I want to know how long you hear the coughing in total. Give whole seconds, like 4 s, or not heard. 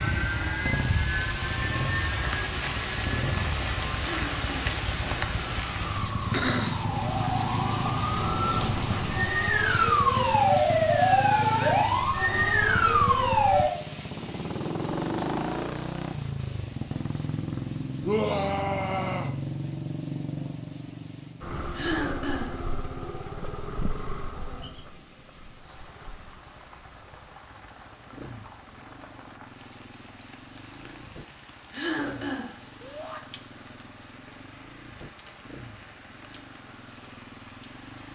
2 s.